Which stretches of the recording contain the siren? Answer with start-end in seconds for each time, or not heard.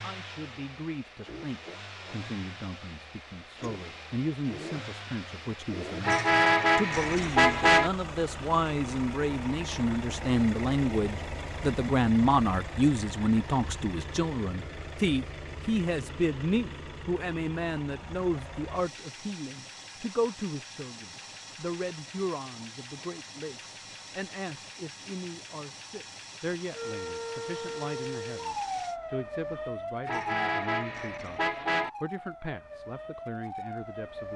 26.7-34.3.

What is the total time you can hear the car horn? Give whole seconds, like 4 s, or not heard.
4 s.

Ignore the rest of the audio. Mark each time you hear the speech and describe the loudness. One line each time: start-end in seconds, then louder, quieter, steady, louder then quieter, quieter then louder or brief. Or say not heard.
0.0-34.3 louder then quieter.